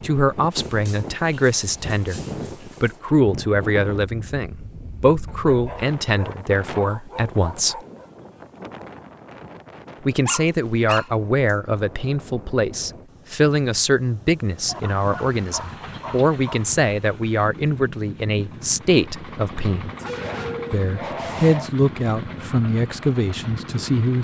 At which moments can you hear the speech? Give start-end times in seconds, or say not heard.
0.0-2.2, 2.8-7.8, 10.1-19.9, 20.7-24.1.